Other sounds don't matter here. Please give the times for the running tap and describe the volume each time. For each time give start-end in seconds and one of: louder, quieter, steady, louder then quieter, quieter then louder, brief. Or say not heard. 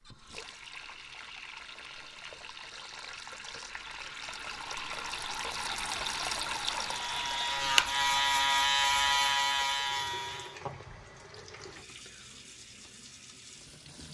0.0-14.1 louder then quieter.